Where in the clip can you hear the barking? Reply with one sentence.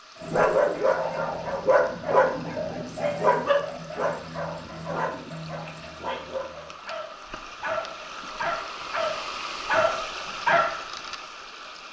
The barking can be heard from 0.2 to 10.8 s.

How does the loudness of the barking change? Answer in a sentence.
The volume of the barking goes down, then up.